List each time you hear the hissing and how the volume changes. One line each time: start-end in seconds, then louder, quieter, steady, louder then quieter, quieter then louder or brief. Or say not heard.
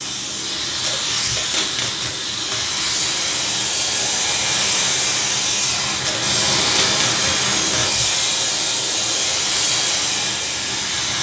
0.0-11.1 steady.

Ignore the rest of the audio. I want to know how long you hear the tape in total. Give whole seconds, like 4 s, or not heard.
4 s.